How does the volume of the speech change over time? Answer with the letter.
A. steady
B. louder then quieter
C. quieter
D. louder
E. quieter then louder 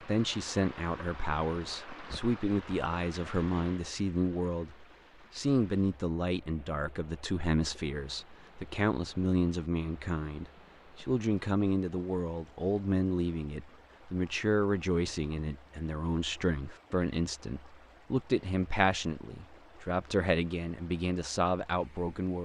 A.